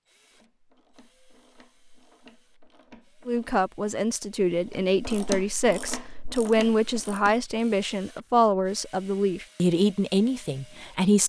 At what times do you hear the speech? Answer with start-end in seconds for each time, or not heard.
3.2-11.2.